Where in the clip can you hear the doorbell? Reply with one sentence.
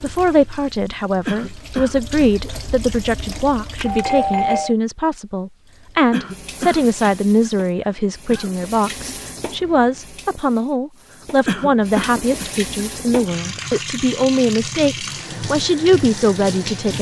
You can hear the doorbell from 3.8 to 4.8 s.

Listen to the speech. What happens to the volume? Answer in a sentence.
The volume of the speech stays about the same.